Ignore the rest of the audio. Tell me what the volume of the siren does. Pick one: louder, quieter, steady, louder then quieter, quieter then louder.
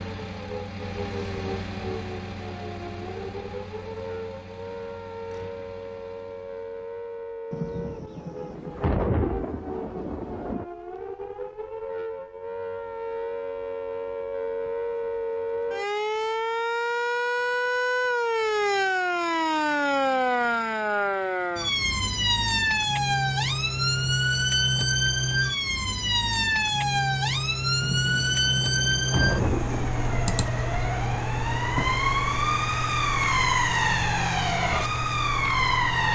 louder.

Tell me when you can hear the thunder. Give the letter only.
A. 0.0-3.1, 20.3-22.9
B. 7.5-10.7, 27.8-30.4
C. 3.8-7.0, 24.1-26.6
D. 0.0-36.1
B.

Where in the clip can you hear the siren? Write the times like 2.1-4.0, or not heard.
0.0-36.1.